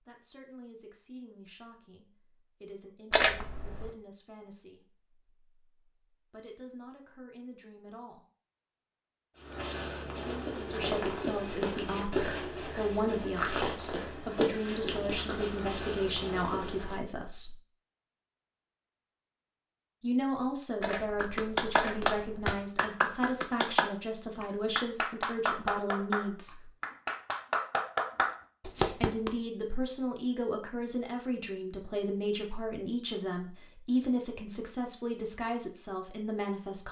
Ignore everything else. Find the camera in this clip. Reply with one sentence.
You can hear the camera from 3.1 to 3.9 s and from 20.8 to 22.6 s.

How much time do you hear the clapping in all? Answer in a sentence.
The clapping can be heard for 8 seconds in total.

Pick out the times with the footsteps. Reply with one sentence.
You can hear the footsteps from 9.3 to 16.9 s.